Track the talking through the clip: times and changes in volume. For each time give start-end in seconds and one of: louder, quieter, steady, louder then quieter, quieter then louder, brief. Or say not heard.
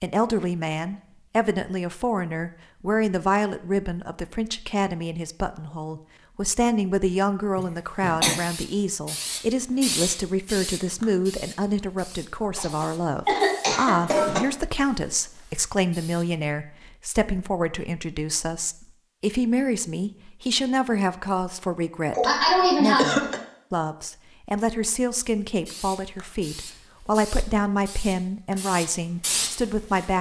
0.0-30.1 steady.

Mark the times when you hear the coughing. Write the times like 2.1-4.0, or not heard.
7.5-8.4, 12.6-14.4, 22.1-23.4.